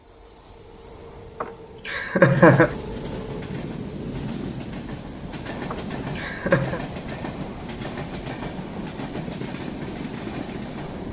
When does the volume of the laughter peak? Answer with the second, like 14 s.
2 s.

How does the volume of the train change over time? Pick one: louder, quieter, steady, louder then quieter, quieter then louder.
louder.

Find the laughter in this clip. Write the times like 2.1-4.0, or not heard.
1.4-2.8, 5.7-6.8.